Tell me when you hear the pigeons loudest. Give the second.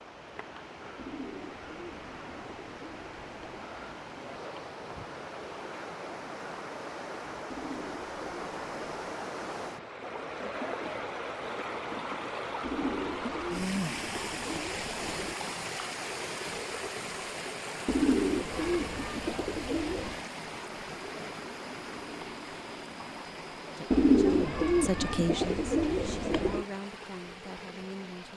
24 s.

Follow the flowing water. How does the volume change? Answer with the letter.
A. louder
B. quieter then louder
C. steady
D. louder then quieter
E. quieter
D.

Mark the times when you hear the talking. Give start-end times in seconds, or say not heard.
23.8-28.3.